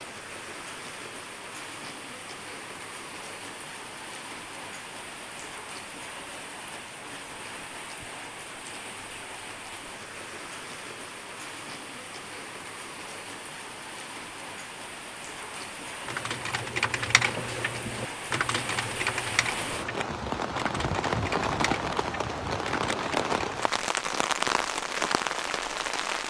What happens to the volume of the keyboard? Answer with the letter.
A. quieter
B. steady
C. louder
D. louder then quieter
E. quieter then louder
A.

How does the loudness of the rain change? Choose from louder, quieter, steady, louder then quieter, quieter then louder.
louder.